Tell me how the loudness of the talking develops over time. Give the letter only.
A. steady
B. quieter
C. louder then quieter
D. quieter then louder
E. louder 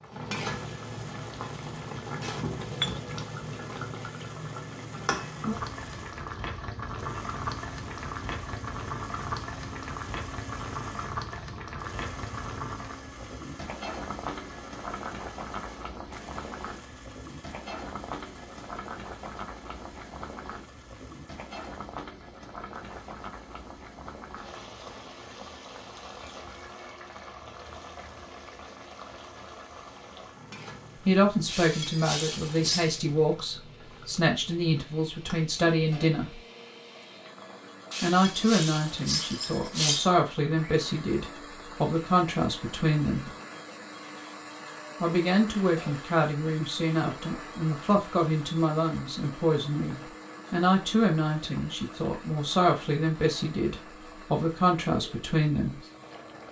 A.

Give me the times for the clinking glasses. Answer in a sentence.
You can hear the clinking glasses from 2.8 to 3.6 s, from 31.4 to 33.0 s and from 37.9 to 40.1 s.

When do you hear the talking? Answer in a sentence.
You can hear the talking from 31.1 to 36.4 s, from 38.0 to 43.3 s and from 45.0 to 55.8 s.